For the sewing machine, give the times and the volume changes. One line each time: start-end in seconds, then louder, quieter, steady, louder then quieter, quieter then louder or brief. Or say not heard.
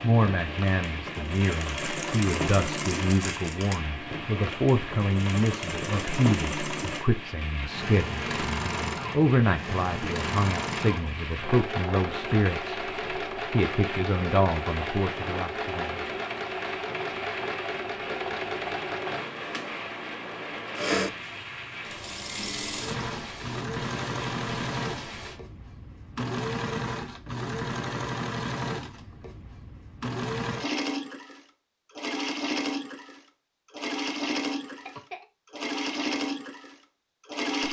0.0-37.6 steady.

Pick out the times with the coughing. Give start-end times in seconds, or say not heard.
34.6-35.2.